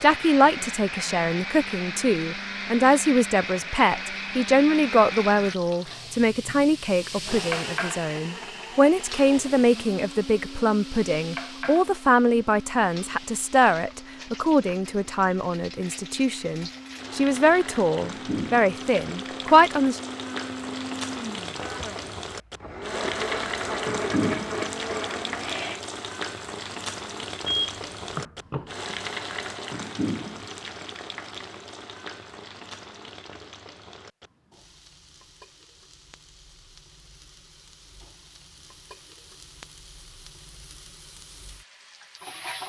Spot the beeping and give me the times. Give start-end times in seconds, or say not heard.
27.4-28.6.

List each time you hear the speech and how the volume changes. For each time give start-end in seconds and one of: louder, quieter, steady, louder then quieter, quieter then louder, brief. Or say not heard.
0.0-20.0 steady.